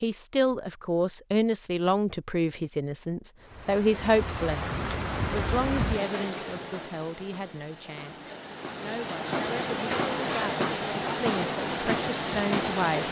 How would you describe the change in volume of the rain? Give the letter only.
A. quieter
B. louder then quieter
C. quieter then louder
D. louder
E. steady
C.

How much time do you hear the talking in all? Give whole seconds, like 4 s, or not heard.
13 s.